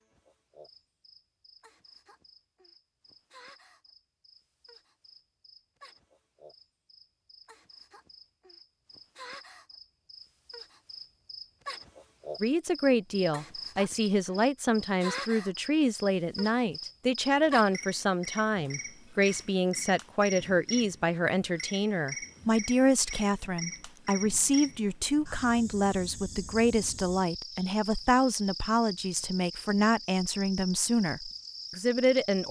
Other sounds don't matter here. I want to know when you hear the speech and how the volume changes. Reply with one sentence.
You can hear the speech from 12.4 to 32.4 s, at a steady volume.